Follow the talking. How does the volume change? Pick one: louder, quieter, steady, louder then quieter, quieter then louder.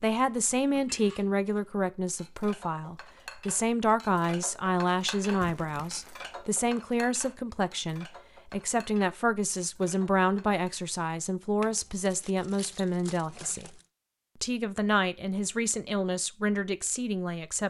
steady.